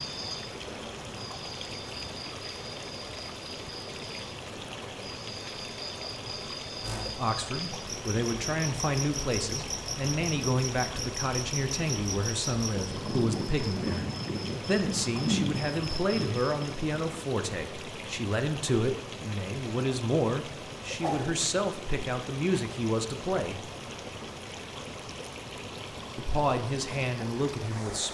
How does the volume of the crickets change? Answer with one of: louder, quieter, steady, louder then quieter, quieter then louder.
louder.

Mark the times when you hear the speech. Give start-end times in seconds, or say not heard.
7.2-23.7, 26.1-28.0.